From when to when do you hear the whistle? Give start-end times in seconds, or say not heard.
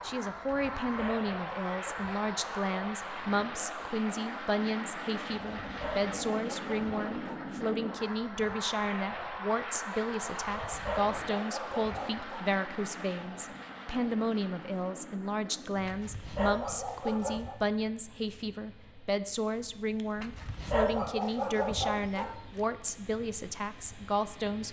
not heard.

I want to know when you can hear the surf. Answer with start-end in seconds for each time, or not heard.
not heard.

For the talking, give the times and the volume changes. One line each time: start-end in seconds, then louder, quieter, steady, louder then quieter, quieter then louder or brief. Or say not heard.
0.0-24.6 steady.